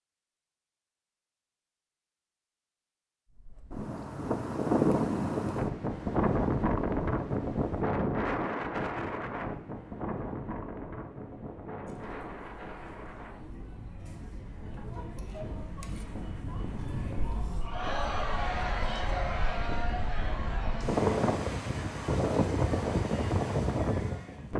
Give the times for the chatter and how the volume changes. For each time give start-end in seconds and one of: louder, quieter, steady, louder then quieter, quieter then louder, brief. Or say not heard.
11.8-24.5 louder then quieter.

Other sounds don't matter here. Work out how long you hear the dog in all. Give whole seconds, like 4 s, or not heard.
not heard.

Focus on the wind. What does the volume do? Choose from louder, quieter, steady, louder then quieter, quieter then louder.
quieter then louder.